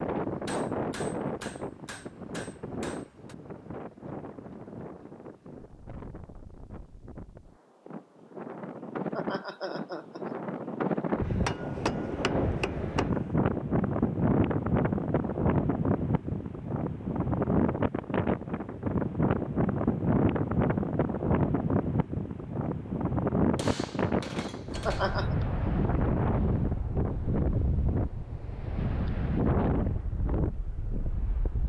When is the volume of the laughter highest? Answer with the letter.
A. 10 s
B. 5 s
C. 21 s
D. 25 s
D.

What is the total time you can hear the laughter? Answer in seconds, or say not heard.
2 s.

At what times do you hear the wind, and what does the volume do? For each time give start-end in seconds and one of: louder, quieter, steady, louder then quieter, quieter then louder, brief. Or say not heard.
0.0-31.6 louder.